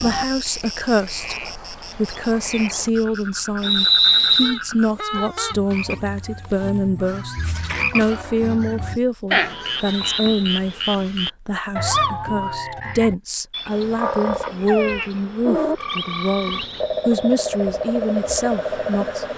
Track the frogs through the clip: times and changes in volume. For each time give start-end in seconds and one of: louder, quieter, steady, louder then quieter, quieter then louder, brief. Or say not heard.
0.0-19.3 louder.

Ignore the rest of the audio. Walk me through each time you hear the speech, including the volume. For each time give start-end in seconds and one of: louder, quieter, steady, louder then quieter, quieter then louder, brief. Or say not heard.
0.0-1.4 brief
1.9-19.2 steady.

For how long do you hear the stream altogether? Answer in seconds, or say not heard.
not heard.